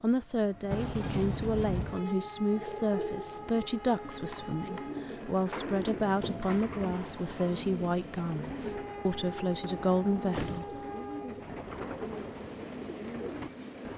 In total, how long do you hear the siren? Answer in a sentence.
The siren can't be heard in this clip.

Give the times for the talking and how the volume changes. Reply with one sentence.
You can hear the talking from 0.0 to 10.7 s, at a steady volume.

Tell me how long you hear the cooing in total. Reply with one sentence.
The cooing can be heard for 12 seconds in total.